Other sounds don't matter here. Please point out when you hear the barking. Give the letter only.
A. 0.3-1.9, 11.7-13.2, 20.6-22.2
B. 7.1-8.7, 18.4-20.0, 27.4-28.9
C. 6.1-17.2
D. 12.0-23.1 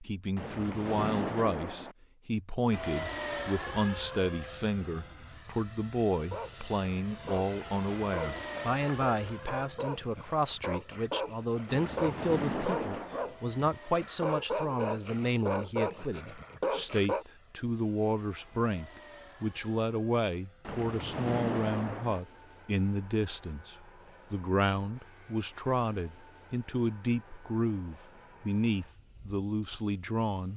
C.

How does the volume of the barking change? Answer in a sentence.
The loudness of the barking goes up.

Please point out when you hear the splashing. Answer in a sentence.
You can hear the splashing from 0.3 to 1.9 s, from 11.7 to 13.2 s and from 20.6 to 22.2 s.